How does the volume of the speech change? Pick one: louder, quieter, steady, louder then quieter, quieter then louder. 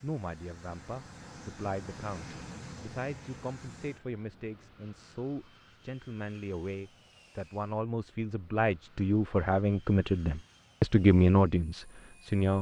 louder.